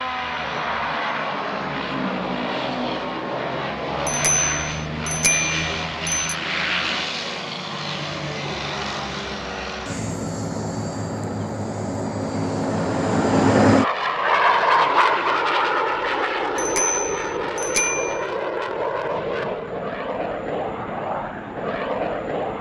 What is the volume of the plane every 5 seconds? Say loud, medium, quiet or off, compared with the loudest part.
medium, medium, loud, loud, medium.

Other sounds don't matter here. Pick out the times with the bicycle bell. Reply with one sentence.
You can hear the bicycle bell from 4.0 to 6.3 s and from 16.6 to 18.2 s.